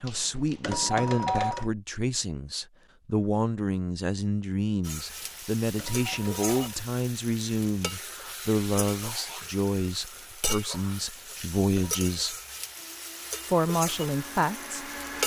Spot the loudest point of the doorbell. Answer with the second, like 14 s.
1 s.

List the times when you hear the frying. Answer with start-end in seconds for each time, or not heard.
4.8-15.2.